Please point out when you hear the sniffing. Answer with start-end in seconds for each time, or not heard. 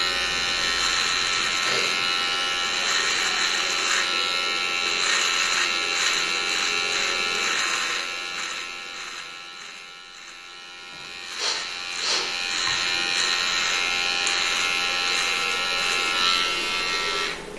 0.9-2.4, 11.3-12.7.